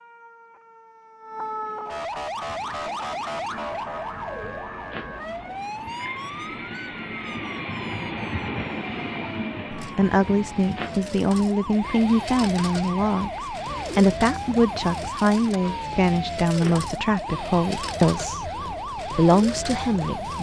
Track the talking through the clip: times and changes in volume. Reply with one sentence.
You can hear the talking from 9.8 to 18.5 s, at a steady volume; and briefly from 19.1 to 20.3 s.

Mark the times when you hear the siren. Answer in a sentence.
The siren can be heard from 0.0 to 20.3 s.